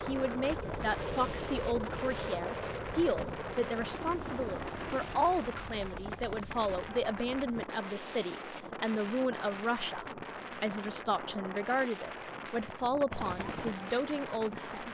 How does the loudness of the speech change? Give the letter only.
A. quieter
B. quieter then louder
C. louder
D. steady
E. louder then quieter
D.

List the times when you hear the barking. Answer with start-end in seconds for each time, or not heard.
not heard.